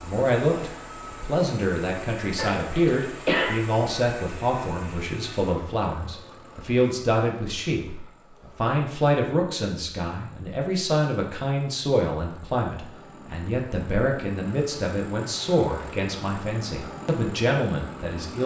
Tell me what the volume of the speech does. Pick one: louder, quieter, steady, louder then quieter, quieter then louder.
steady.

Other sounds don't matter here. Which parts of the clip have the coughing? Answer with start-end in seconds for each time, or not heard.
2.4-3.6.